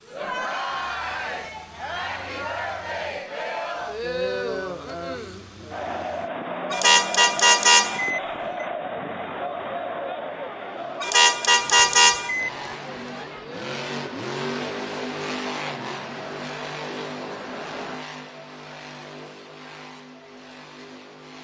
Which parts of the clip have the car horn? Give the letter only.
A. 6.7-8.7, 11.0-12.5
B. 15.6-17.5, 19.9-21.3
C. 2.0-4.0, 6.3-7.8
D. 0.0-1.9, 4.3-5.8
A.